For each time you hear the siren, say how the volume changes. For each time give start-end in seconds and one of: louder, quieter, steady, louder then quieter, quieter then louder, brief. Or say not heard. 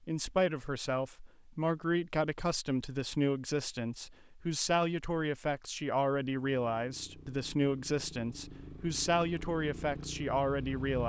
not heard.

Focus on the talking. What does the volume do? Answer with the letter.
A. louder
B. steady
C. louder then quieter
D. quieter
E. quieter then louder
B.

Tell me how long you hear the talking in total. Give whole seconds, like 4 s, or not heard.
11 s.